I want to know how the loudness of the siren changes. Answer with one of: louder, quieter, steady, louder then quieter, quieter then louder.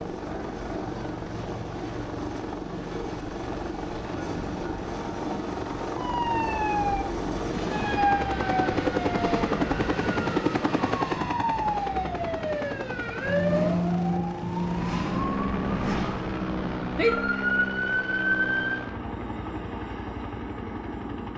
quieter then louder.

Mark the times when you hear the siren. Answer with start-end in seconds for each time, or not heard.
6.0-18.9.